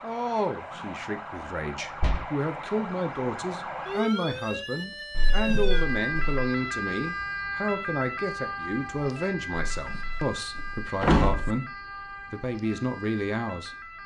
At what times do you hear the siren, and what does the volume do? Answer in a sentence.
The siren can be heard from 0.0 to 14.0 s, getting louder then quieter.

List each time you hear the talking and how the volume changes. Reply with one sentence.
The talking can be heard from 0.0 to 13.8 s, at a steady volume.